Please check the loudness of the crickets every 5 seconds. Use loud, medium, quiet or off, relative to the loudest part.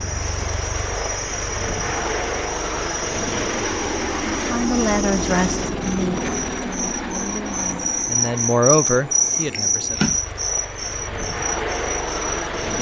medium, loud, loud.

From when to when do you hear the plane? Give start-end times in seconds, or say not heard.
0.0-12.7.